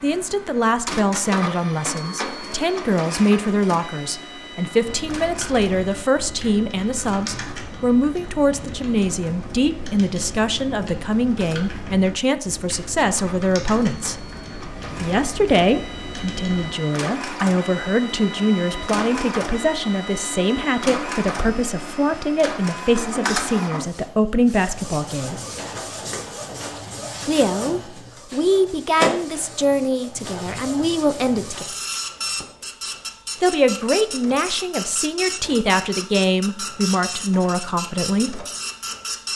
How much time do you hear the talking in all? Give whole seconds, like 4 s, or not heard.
34 s.